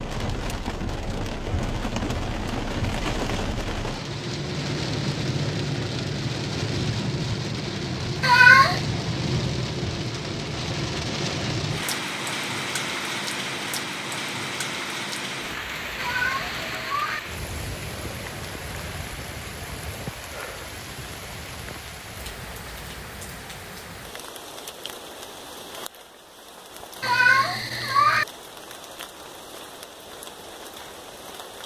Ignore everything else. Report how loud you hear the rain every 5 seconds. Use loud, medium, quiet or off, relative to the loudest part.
loud, loud, loud, medium, medium, quiet, quiet.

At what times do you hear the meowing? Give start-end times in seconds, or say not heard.
8.2-8.8, 15.9-17.2, 27.0-28.2.